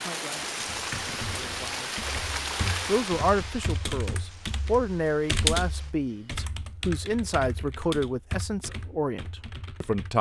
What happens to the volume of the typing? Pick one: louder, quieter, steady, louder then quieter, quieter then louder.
louder then quieter.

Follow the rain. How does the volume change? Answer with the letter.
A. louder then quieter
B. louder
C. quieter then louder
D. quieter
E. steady
D.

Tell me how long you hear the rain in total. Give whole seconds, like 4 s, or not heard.
6 s.